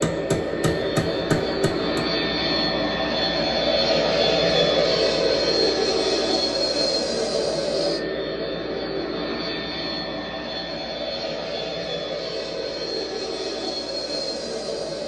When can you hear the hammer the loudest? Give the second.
1 s.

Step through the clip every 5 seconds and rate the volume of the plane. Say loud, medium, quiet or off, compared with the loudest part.
loud, loud, medium.